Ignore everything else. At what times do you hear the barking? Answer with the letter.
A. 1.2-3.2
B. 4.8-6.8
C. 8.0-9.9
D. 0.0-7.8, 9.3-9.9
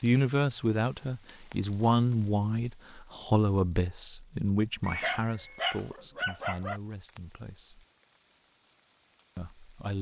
B.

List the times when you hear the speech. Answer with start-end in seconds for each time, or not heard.
0.0-7.8, 9.3-9.9.